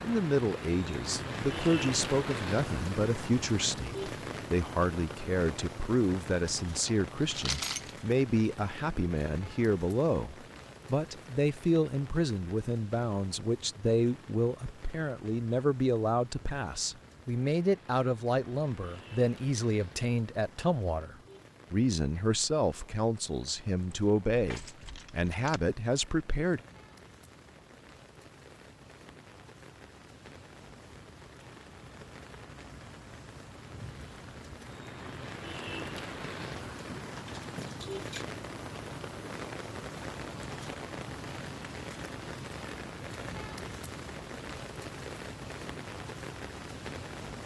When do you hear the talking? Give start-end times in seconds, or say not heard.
0.0-26.6.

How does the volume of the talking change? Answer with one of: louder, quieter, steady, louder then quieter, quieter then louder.
steady.